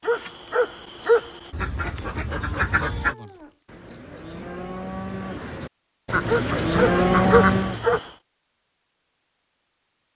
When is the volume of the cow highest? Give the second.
7 s.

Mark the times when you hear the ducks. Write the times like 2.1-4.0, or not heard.
1.5-3.1, 6.0-8.0.